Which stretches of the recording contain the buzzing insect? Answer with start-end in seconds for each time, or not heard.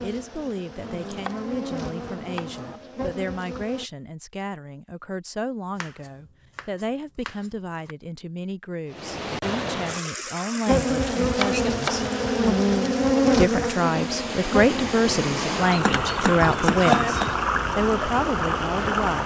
0.0-3.9, 10.7-19.2.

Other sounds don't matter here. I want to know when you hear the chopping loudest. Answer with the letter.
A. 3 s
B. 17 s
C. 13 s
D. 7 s
B.